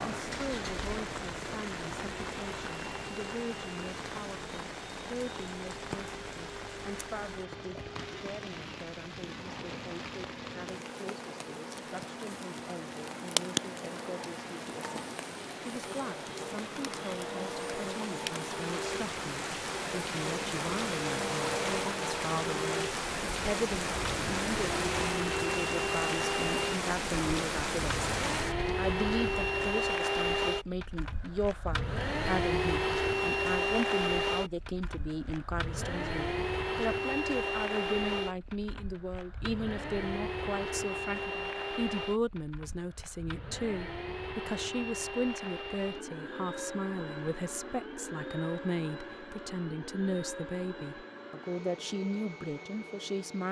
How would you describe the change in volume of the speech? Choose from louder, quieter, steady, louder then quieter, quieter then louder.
louder.